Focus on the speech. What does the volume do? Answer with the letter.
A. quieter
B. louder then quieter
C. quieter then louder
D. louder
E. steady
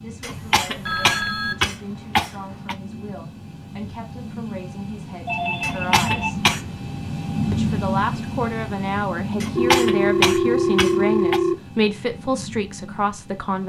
D.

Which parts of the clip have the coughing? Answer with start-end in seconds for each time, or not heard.
0.2-2.8, 5.6-6.6, 9.4-11.4.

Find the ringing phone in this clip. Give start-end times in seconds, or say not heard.
0.3-1.6, 5.2-6.3, 9.6-11.6.